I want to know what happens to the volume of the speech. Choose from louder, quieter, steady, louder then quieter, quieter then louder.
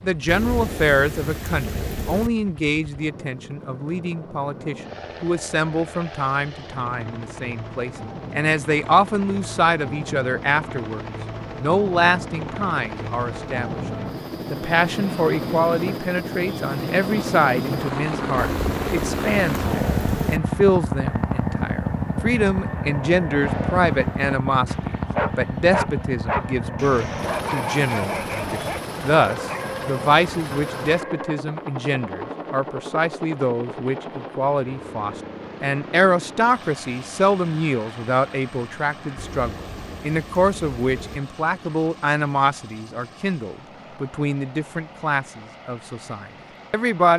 steady.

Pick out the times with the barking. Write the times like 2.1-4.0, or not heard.
23.8-31.4.